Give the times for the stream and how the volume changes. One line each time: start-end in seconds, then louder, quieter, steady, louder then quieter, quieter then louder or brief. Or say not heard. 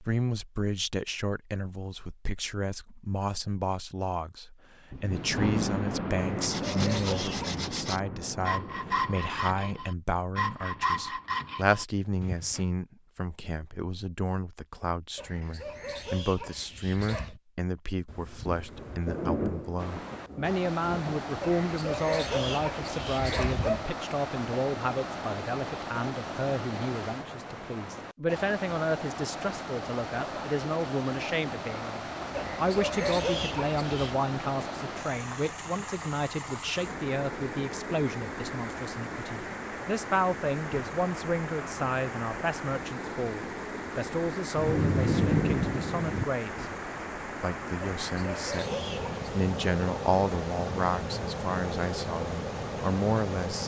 19.8-53.6 steady.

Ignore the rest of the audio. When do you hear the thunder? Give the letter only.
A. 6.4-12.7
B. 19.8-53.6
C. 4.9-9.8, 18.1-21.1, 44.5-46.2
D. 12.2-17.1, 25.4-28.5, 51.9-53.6
C.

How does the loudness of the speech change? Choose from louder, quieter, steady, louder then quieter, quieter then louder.
steady.